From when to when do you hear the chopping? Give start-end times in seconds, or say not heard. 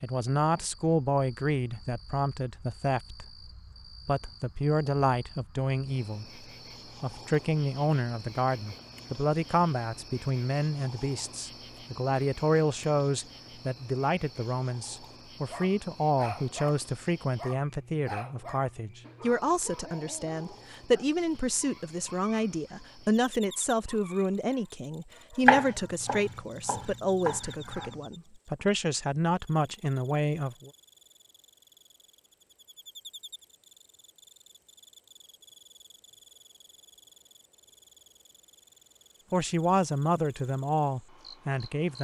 25.4-28.0.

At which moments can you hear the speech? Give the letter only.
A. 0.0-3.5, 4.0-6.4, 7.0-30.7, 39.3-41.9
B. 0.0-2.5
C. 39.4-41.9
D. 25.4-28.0
A.